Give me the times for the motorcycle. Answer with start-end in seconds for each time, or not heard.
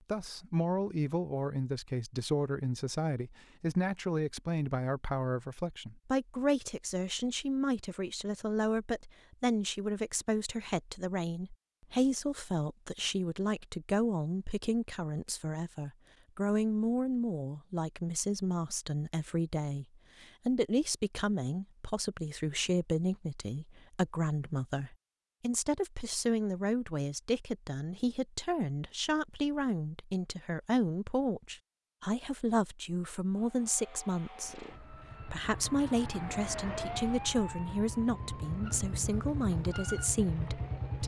34.5-41.0.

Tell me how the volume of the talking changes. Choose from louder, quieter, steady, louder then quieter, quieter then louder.
steady.